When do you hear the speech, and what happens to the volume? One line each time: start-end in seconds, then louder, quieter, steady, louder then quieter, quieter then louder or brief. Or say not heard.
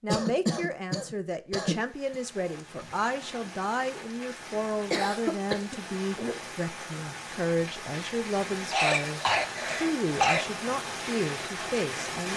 0.0-12.3 steady.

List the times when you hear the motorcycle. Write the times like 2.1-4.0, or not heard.
not heard.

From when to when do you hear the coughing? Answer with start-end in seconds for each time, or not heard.
0.1-2.1, 4.9-6.3, 8.7-10.4.